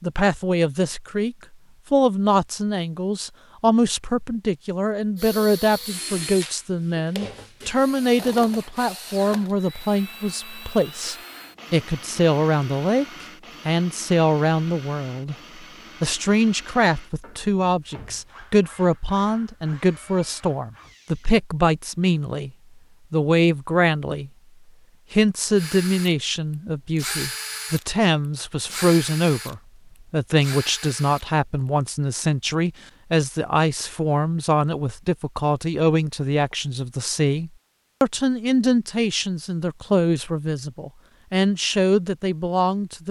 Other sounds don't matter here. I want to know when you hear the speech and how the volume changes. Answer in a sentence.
The speech can be heard from 0.0 to 15.3 s, at a steady volume; from 16.0 to 22.5 s, at a steady volume; briefly from 23.1 to 24.3 s; and from 25.1 to 43.0 s, at a steady volume.